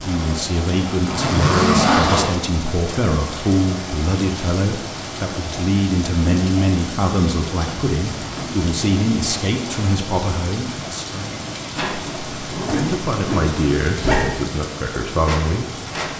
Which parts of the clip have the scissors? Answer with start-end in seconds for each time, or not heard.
not heard.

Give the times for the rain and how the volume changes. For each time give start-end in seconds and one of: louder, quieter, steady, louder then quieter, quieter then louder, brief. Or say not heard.
0.0-16.1 steady.